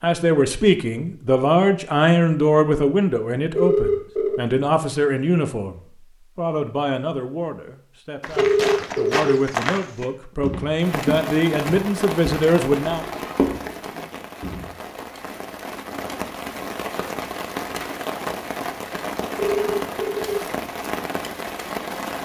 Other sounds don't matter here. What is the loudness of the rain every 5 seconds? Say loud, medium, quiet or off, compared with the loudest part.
off, off, loud, loud, loud.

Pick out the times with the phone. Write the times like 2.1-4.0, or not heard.
3.5-4.5, 8.3-9.3, 19.4-20.4.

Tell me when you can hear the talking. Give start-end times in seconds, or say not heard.
0.0-13.1.